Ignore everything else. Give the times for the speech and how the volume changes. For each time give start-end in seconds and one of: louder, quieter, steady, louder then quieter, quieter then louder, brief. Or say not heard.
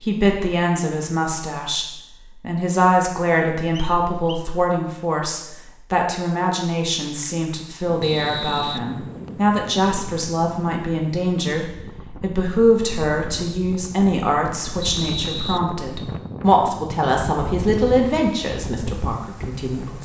0.0-20.0 steady.